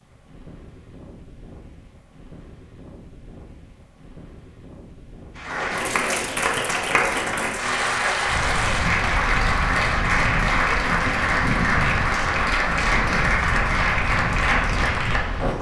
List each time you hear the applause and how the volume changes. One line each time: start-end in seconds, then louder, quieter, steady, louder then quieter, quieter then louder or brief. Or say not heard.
5.3-15.5 steady.